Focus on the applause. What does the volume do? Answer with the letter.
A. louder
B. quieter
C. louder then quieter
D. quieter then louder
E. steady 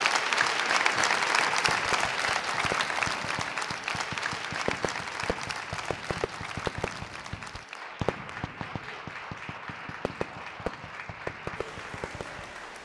B.